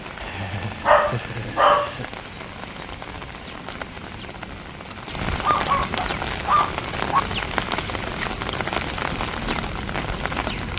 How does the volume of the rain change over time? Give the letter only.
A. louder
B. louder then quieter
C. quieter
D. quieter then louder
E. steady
A.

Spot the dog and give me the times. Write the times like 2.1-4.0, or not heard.
0.8-1.9, 5.4-7.2.